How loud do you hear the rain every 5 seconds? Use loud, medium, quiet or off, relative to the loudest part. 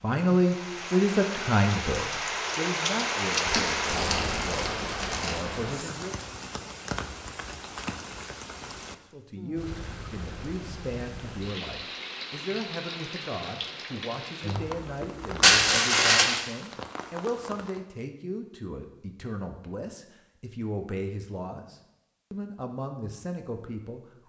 loud, medium, medium, medium, off.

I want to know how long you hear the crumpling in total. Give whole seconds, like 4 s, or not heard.
3 s.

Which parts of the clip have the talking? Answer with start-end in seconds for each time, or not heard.
0.0-6.2, 8.9-24.2.